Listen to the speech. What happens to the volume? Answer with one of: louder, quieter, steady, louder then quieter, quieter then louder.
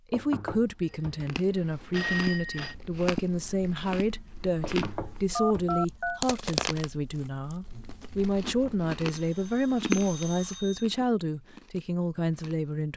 steady.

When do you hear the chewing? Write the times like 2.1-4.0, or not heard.
1.2-12.7.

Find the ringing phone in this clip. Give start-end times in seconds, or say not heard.
1.9-2.8, 5.3-6.2, 9.1-11.1.